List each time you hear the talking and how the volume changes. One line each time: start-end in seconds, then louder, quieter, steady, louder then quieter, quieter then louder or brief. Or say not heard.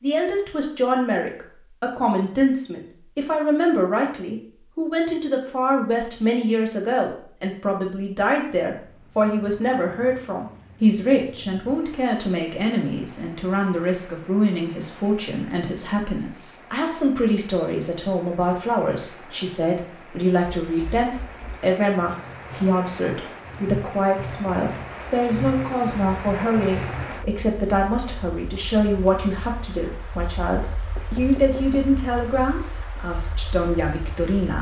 0.0-34.5 steady.